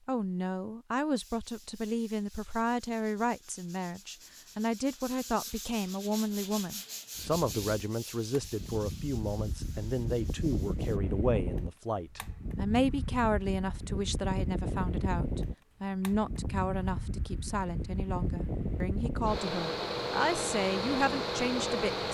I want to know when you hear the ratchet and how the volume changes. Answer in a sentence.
You can't hear the ratchet here.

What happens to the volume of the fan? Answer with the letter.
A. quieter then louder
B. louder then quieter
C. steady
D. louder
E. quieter
D.